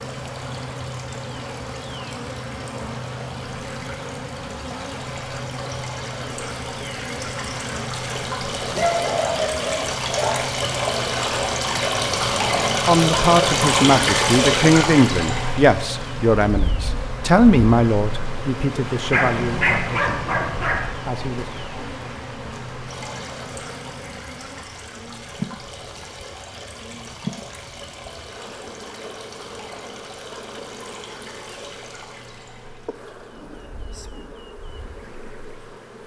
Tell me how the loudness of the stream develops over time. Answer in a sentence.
The volume of the stream goes up, then down.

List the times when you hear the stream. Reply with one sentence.
You can hear the stream from 0.0 to 36.0 s.